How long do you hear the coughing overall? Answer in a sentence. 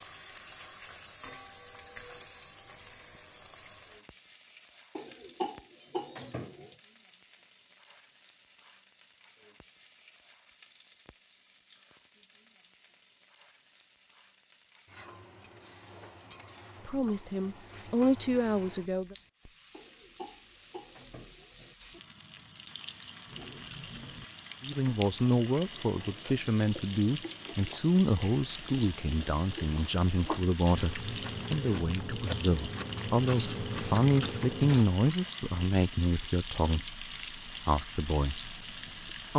The coughing can be heard for 4 seconds in total.